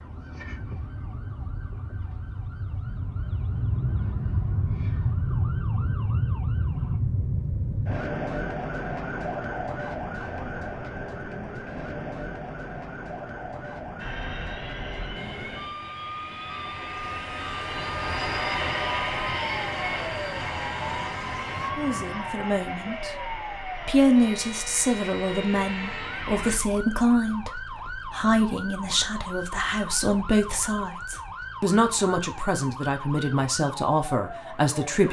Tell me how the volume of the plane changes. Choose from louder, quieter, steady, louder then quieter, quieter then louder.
louder then quieter.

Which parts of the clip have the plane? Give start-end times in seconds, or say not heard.
13.9-26.6.